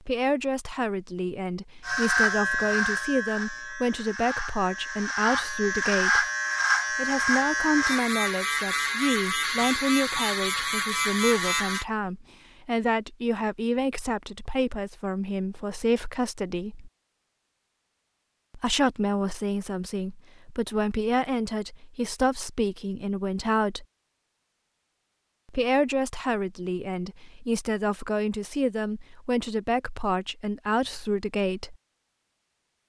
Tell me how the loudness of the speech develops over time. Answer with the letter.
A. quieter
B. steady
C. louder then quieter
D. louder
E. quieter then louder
B.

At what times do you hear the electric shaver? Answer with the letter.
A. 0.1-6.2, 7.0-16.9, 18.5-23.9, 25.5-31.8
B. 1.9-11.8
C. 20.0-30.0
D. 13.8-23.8
B.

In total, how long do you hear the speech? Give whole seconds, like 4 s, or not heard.
28 s.